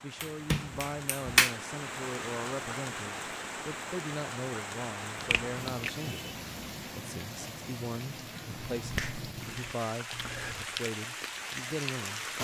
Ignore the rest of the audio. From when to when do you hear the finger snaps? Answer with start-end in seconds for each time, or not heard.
0.2-1.6, 5.2-5.9, 8.7-10.6.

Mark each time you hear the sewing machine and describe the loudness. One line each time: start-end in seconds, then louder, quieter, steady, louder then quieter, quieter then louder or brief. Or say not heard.
not heard.